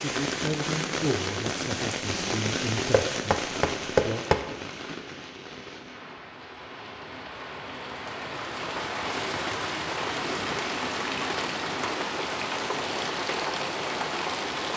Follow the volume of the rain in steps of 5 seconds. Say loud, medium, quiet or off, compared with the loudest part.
loud, medium, loud.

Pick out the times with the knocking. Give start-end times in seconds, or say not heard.
2.9-4.4.